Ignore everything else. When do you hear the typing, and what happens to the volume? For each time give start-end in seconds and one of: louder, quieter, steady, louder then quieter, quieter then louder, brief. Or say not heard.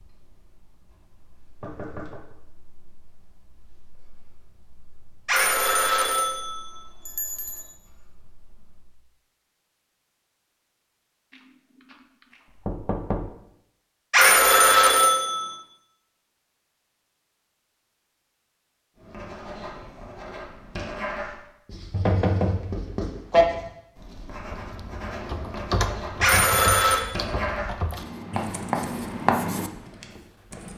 24.5-30.7 quieter.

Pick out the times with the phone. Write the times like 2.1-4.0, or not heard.
5.2-7.7, 14.1-15.6, 26.2-27.1.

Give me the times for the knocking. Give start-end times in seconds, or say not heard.
1.6-2.2, 12.7-13.3, 21.9-23.4.